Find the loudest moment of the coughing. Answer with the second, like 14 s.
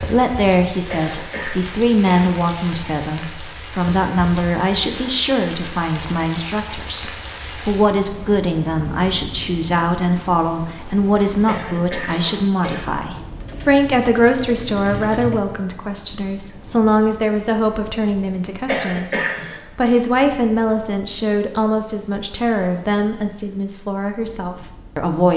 19 s.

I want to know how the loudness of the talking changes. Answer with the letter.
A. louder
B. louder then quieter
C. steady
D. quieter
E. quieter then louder
C.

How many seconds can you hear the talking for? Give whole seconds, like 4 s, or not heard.
25 s.